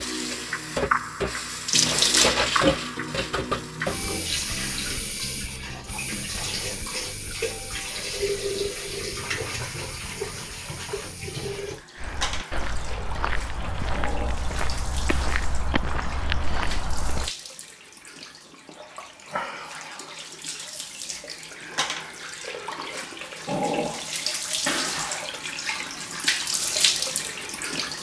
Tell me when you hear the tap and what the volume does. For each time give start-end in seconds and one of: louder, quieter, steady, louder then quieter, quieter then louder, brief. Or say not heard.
0.0-27.9 quieter then louder.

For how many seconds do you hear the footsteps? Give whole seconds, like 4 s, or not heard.
5 s.